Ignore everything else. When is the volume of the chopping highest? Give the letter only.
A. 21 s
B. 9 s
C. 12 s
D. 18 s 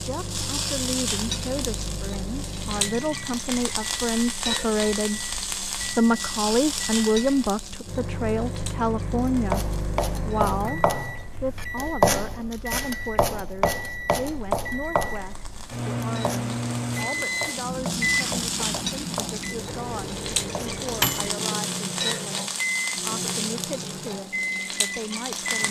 C.